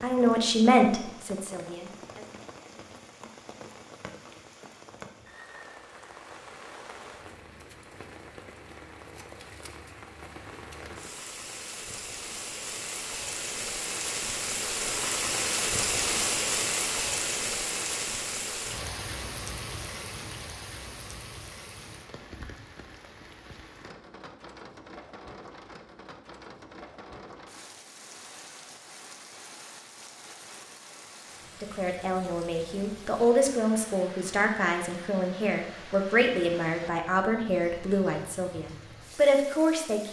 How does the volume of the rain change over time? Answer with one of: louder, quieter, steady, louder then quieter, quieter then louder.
louder then quieter.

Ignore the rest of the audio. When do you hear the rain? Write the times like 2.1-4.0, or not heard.
0.0-40.0.